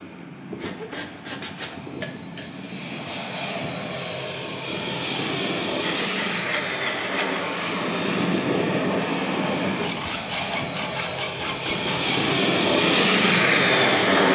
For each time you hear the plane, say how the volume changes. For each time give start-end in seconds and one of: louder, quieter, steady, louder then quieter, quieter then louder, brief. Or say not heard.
0.0-14.3 louder.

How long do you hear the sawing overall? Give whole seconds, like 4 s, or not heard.
6 s.